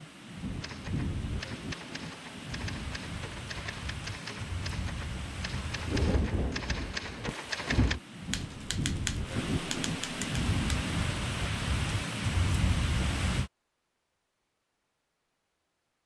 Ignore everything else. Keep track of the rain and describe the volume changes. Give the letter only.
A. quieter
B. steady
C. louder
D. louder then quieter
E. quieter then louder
C.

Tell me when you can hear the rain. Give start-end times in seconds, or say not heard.
0.0-13.5.